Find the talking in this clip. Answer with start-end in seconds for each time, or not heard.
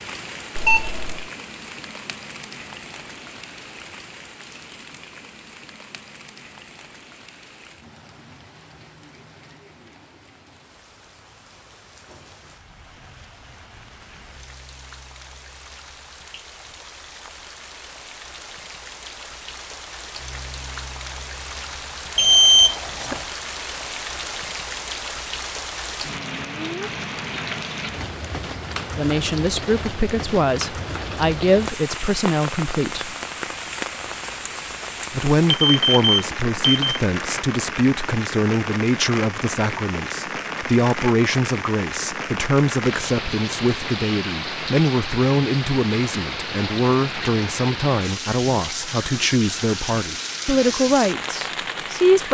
28.9-33.1, 35.1-52.2.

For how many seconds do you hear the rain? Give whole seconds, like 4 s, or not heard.
52 s.